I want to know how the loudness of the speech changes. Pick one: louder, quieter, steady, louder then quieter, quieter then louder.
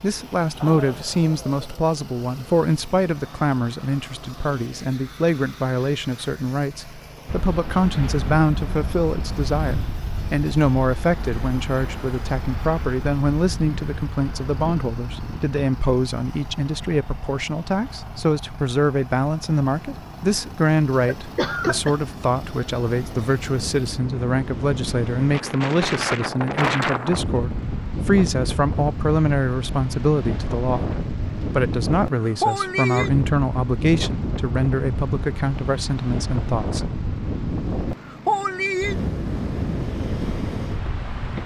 steady.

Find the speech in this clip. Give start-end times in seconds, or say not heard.
0.0-36.8.